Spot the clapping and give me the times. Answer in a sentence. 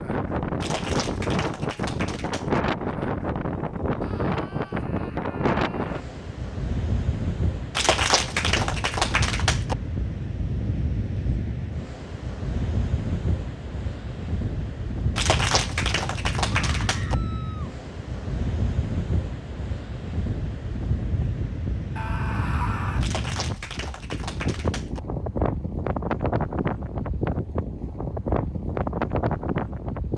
You can hear the clapping from 0.6 to 2.6 s, from 7.8 to 9.8 s, from 15.2 to 17.1 s and from 23.0 to 25.0 s.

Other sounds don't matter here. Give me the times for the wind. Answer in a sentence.
You can hear the wind from 0.0 to 30.1 s.